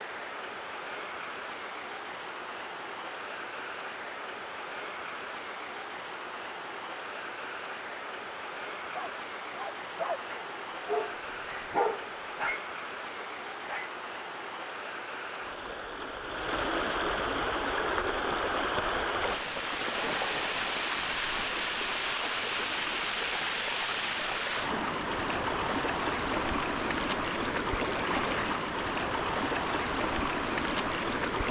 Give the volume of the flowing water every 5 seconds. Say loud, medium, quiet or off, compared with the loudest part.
medium, medium, medium, loud, loud, loud, loud.